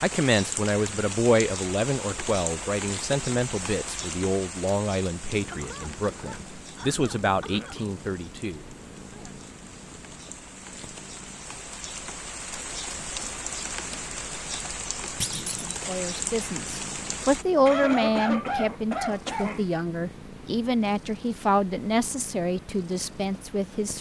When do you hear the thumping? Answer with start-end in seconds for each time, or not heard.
15.2-15.7.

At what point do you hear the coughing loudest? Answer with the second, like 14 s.
18 s.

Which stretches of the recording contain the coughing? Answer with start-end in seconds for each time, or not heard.
5.5-7.8, 17.6-19.7.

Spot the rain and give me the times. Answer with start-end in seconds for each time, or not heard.
0.0-17.4.